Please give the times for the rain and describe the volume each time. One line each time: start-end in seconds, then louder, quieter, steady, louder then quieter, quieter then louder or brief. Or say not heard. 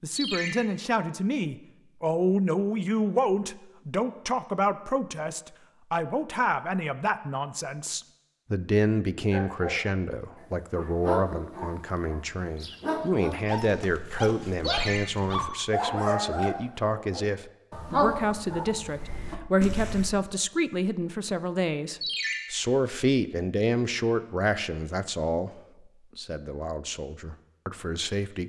not heard.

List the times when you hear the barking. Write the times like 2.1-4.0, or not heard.
9.3-20.1.